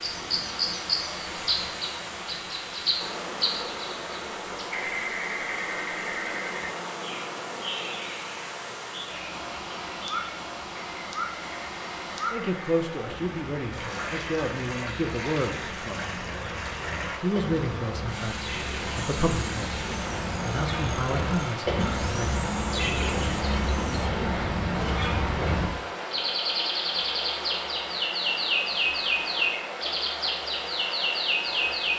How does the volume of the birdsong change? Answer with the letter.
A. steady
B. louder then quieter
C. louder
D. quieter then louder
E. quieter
D.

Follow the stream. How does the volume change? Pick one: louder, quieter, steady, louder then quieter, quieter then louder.
steady.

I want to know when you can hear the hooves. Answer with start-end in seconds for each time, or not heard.
not heard.